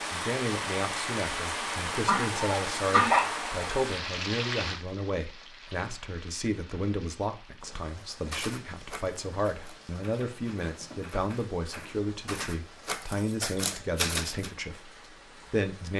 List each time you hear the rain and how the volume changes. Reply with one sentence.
You can hear the rain from 0.0 to 15.9 s, getting quieter.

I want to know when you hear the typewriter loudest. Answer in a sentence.
The loudest moment of the typewriter is at 14 seconds.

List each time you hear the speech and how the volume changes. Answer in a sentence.
You can hear the speech from 0.1 to 14.9 s, at a steady volume; and briefly from 15.5 to 15.9 s.